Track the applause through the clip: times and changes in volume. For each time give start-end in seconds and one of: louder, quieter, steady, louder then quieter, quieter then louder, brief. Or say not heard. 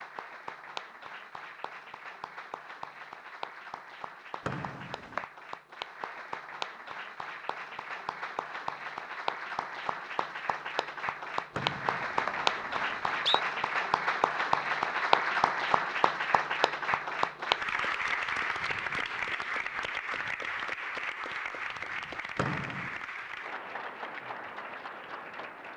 0.0-25.7 louder then quieter.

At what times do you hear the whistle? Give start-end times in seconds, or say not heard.
4.5-5.2, 11.6-13.4, 22.4-23.0.